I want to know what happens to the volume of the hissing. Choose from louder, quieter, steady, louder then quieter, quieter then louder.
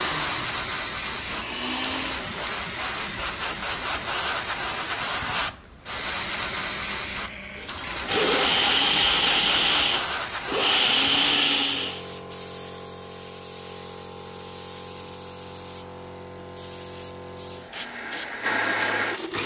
quieter.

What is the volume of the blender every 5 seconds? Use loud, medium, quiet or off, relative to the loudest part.
medium, loud, loud, medium.